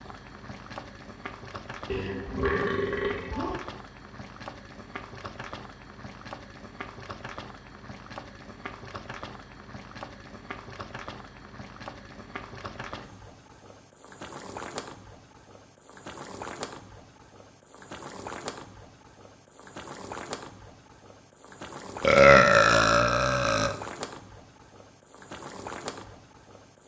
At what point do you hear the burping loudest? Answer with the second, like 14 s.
22 s.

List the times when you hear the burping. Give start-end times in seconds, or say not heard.
1.9-3.6, 22.0-23.8.